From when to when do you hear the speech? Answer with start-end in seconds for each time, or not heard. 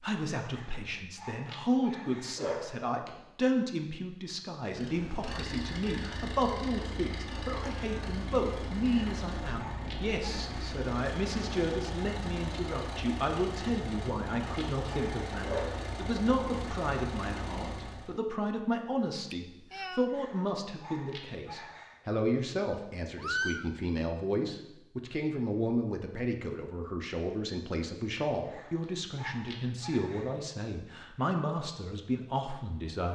0.0-33.1.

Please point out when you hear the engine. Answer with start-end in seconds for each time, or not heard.
4.7-18.1.